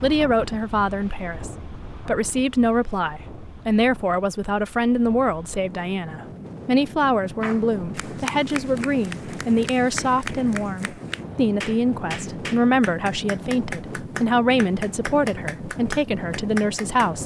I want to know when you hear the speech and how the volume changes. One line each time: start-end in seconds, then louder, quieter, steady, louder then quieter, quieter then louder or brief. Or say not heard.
0.0-17.2 steady.